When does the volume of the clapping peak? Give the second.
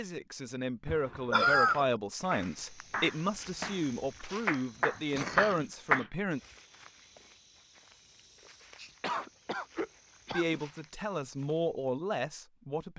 6 s.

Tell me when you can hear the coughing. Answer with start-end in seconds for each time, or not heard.
0.8-1.9, 5.0-6.1, 8.8-10.6.